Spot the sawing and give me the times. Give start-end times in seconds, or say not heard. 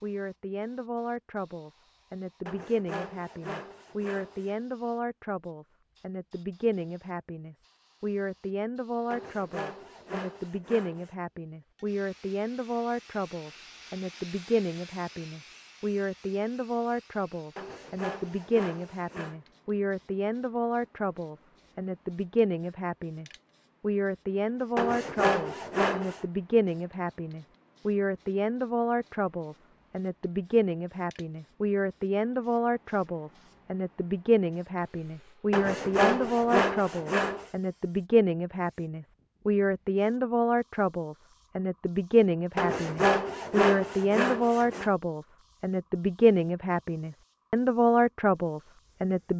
2.5-4.5, 9.1-11.1, 17.6-19.4, 24.8-26.2, 35.5-37.5, 42.5-44.9.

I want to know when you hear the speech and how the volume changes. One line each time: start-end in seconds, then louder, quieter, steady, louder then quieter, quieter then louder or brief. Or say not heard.
0.0-49.3 louder.